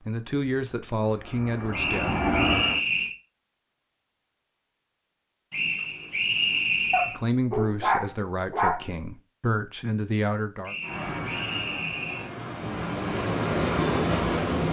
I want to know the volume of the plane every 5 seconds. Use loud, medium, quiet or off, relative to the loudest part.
loud, off, loud.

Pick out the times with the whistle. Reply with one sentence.
The whistle can be heard from 1.7 to 3.1 s, from 5.5 to 7.2 s and from 10.7 to 12.3 s.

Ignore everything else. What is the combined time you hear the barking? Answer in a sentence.
The barking can be heard for 2 seconds in total.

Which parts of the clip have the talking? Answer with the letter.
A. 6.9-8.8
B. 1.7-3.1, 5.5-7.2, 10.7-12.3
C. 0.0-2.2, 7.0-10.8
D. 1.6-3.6
C.